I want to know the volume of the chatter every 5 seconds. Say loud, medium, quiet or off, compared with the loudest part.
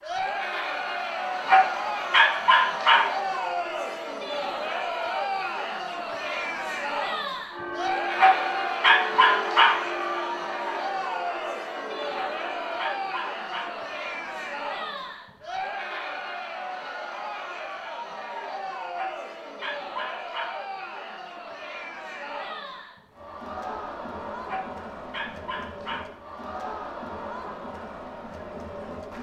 loud, loud, loud, medium, medium, medium.